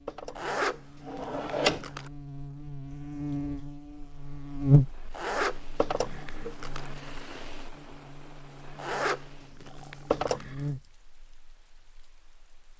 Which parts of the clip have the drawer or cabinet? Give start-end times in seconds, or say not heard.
0.1-1.9, 5.8-6.5, 10.1-10.6.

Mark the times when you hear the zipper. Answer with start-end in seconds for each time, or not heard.
0.3-2.1, 5.1-6.9, 8.8-10.4.